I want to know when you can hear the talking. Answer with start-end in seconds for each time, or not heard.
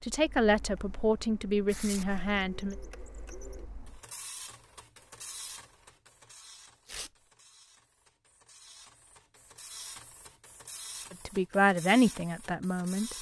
0.0-2.8, 11.1-13.1.